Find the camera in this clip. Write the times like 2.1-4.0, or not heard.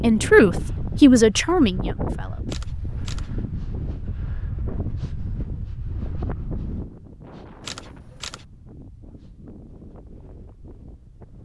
2.5-3.3, 7.6-8.4.